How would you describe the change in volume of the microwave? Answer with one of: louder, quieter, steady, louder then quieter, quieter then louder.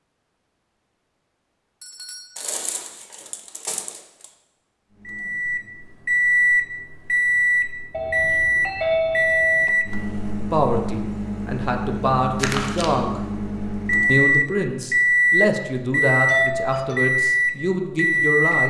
quieter then louder.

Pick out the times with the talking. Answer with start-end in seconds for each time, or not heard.
10.4-13.2, 14.1-18.6.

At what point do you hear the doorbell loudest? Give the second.
9 s.